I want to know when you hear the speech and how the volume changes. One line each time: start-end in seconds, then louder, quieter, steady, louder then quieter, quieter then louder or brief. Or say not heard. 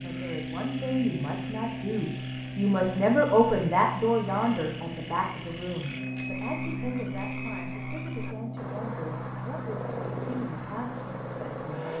0.0-11.9 louder then quieter.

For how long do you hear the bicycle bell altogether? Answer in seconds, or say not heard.
2 s.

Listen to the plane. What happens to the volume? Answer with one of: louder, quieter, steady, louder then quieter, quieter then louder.
steady.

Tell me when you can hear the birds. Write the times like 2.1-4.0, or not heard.
not heard.